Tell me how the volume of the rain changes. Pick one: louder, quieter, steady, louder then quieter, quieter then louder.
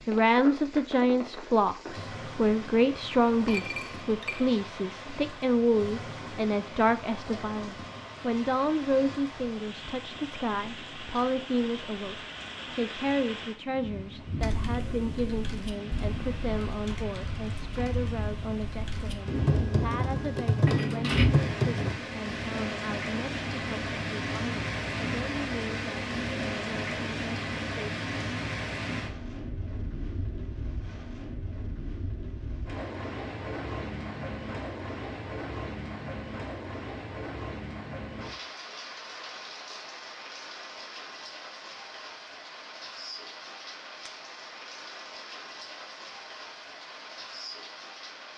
louder then quieter.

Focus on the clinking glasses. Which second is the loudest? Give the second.
21 s.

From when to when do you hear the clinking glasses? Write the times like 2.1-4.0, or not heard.
3.3-4.5, 20.6-21.3, 44.0-44.5.